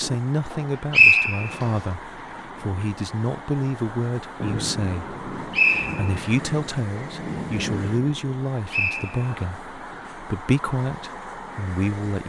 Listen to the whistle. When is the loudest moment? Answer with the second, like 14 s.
1 s.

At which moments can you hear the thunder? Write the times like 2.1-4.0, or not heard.
4.4-8.1.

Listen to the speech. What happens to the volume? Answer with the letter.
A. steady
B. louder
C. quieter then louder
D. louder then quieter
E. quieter
A.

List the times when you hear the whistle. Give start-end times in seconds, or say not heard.
0.9-1.7, 5.5-6.2, 8.7-9.3.